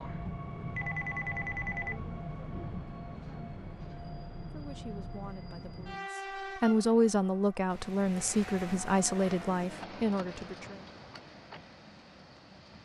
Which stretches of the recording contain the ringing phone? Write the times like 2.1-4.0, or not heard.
0.8-2.0.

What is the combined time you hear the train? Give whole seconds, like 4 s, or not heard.
13 s.